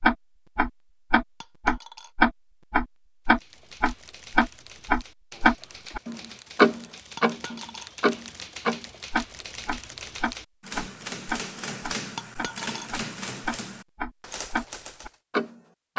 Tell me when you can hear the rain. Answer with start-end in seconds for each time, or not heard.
not heard.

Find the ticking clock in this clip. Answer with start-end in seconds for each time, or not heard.
0.0-15.9.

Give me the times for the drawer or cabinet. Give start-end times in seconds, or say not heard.
not heard.